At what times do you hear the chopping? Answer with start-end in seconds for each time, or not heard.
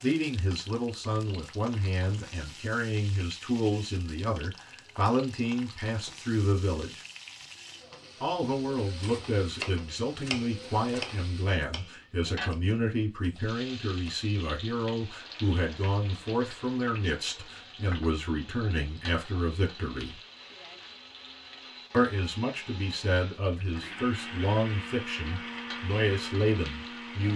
8.8-14.3.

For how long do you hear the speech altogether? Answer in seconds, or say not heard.
24 s.